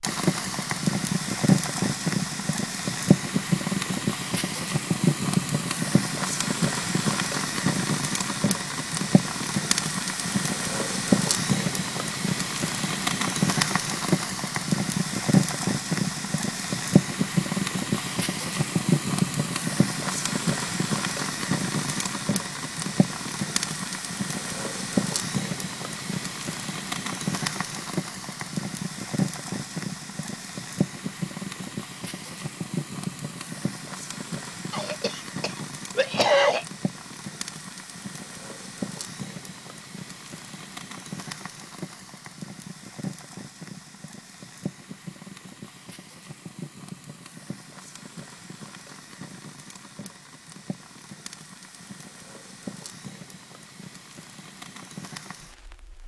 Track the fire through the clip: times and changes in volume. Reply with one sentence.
The fire can be heard from 0.0 to 56.0 s, getting quieter.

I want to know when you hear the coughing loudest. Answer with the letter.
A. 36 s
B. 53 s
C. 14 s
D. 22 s
A.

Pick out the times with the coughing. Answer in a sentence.
The coughing can be heard from 34.7 to 36.6 s.